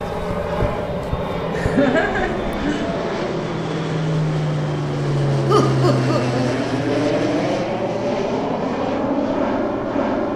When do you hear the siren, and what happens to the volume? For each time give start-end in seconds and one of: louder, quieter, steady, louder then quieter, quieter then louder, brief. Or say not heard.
not heard.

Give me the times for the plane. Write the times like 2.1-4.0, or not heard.
0.0-10.3.